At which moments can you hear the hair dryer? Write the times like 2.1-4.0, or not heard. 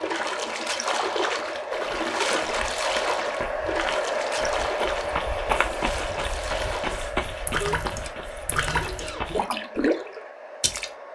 0.0-11.1.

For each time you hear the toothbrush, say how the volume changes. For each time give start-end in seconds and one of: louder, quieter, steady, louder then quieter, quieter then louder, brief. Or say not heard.
not heard.